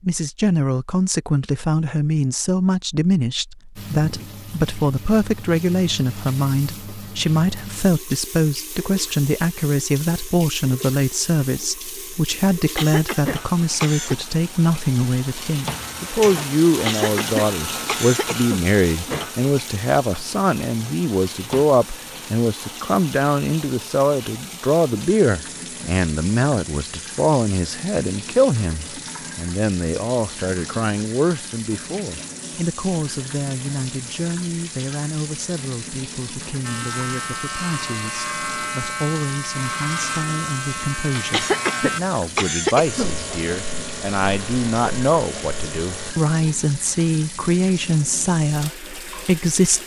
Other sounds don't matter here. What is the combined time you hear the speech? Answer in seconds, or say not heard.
50 s.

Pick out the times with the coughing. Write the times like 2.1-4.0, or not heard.
12.8-14.2, 16.9-18.6, 41.3-43.1.